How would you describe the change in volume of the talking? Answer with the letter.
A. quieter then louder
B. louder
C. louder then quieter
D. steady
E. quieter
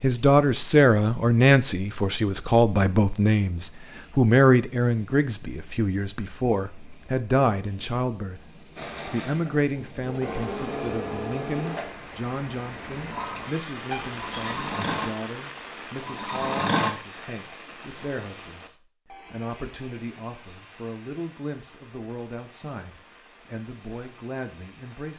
E.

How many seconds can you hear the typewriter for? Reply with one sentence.
The typewriter can't be heard in this clip.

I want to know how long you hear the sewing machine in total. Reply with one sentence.
The sewing machine can be heard for 8 seconds in total.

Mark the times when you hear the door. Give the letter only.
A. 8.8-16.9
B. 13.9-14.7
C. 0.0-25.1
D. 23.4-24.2
B.